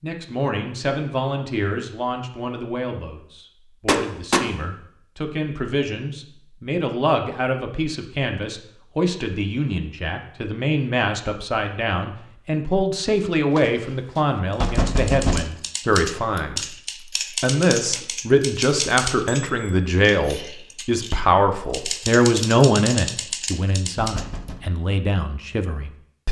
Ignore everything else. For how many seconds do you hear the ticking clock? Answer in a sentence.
The ticking clock can't be heard in this clip.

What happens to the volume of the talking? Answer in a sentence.
The volume of the talking goes up.